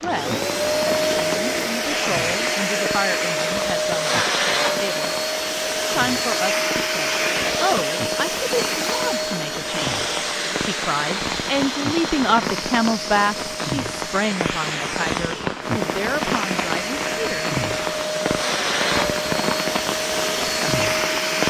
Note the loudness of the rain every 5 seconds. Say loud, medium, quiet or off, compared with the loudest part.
medium, medium, loud, loud, loud.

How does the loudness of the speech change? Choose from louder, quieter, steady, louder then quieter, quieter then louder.
louder then quieter.